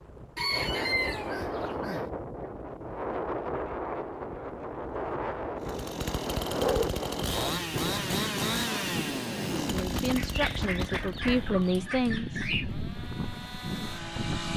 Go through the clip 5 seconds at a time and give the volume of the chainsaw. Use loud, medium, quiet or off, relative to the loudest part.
off, loud, medium.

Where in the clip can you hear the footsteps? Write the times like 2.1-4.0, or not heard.
not heard.